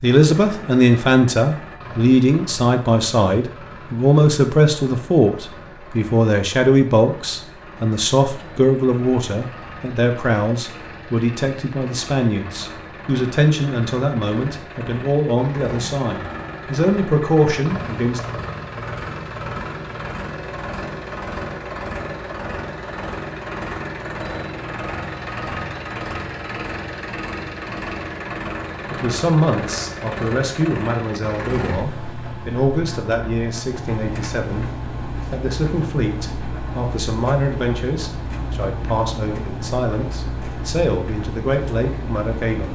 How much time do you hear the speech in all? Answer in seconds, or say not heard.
31 s.